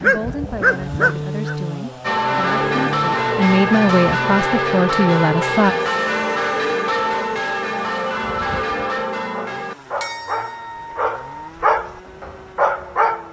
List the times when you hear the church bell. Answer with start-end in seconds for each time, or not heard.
2.0-12.9.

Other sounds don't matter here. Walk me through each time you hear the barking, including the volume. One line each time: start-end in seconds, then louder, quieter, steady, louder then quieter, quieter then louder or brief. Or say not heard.
0.0-1.6 brief
8.2-13.2 louder.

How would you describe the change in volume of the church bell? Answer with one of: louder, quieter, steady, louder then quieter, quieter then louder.
quieter.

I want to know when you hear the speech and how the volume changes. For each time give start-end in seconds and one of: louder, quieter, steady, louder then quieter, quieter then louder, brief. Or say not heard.
0.0-5.8 louder.